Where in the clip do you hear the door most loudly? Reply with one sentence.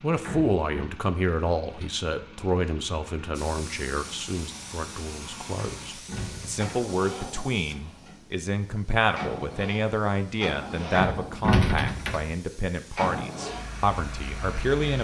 The loudest moment of the door is at 12 seconds.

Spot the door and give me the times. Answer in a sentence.
You can hear the door from 0.2 to 0.9 s, from 5.5 to 6.8 s and from 10.9 to 12.3 s.